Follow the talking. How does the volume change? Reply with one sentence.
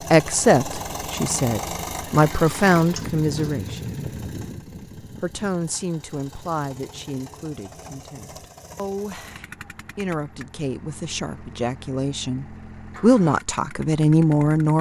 The loudness of the talking goes down, then up.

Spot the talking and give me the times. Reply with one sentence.
You can hear the talking from 0.1 to 4.0 s and from 5.0 to 14.7 s.